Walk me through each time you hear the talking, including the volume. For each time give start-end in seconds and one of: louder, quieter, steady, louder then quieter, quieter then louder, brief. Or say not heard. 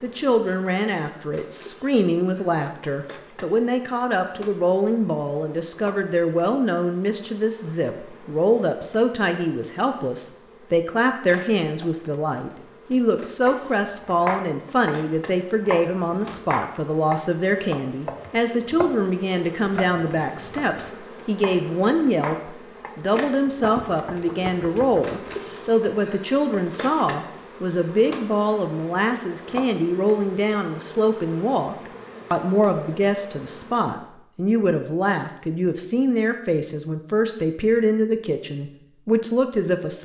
0.0-40.0 steady.